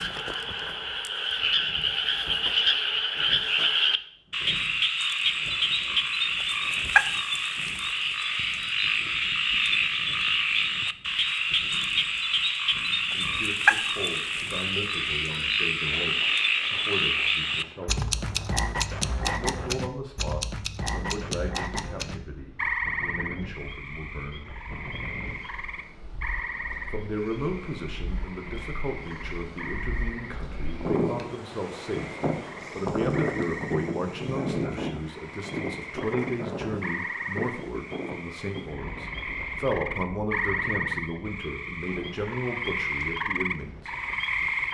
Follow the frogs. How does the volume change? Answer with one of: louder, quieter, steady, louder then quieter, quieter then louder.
quieter then louder.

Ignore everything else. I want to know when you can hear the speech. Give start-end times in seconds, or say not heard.
12.8-18.1, 19.1-24.6, 26.9-43.9.